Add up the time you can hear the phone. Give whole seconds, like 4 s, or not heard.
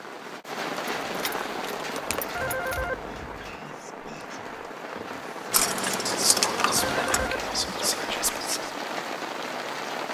2 s.